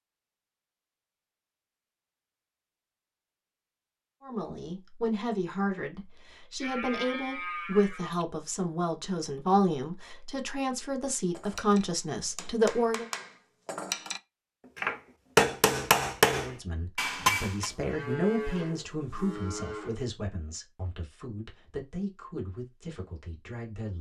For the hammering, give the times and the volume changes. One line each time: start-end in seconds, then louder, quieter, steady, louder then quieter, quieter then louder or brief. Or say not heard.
11.3-17.7 louder.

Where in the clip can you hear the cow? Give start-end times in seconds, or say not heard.
6.6-8.2, 17.6-20.1.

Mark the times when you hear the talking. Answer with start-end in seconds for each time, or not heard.
4.2-13.1, 16.4-23.9.